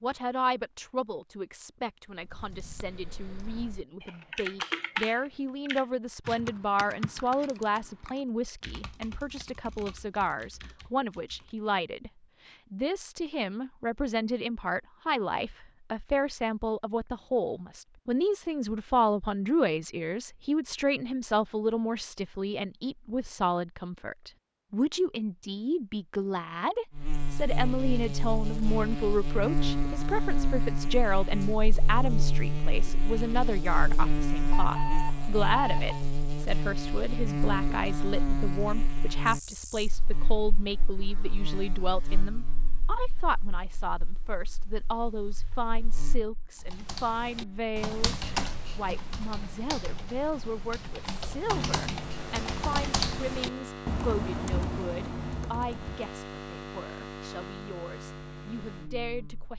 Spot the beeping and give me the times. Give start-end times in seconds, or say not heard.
34.5-36.0.